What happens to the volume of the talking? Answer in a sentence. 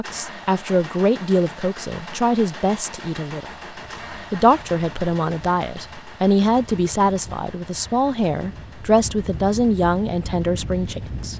The loudness of the talking stays about the same.